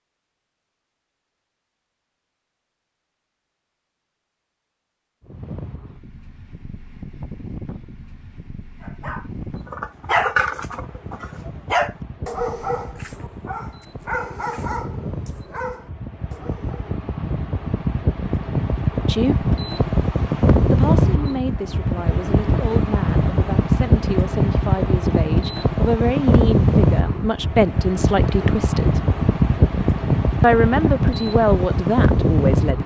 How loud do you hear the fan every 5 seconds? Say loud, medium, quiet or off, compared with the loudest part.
off, quiet, quiet, medium, loud, loud, loud.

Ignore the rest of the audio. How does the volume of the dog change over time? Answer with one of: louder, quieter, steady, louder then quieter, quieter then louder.
quieter.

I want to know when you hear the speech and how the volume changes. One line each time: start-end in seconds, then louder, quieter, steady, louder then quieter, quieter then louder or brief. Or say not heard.
19.1-19.5 brief
20.7-29.0 louder
30.4-32.8 brief.